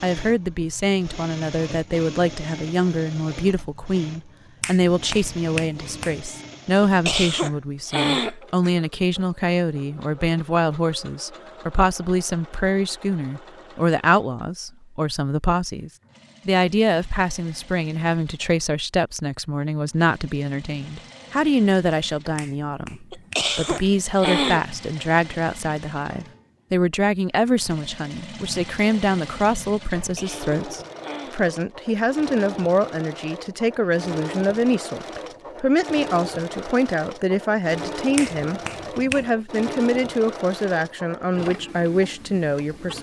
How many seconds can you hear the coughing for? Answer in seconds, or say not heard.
5 s.